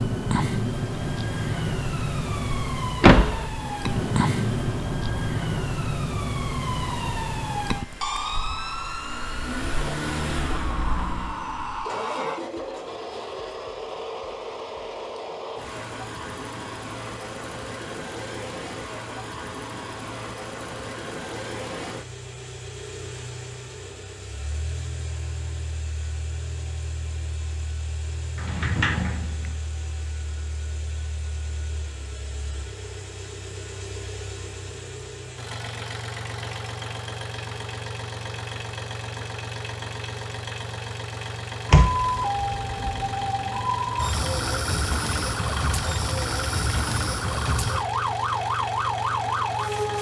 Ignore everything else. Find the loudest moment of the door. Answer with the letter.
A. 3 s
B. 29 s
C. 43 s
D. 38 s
A.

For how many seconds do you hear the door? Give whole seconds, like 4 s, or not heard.
3 s.